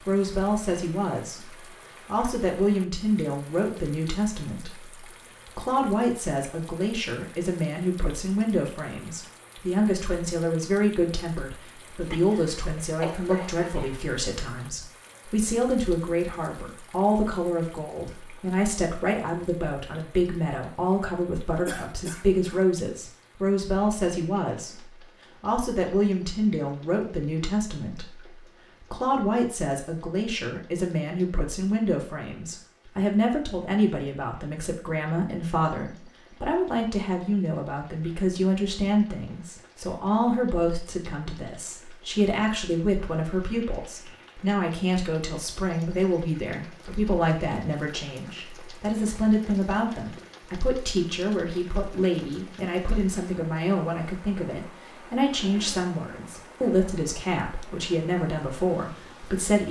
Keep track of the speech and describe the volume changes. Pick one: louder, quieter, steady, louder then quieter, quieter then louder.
steady.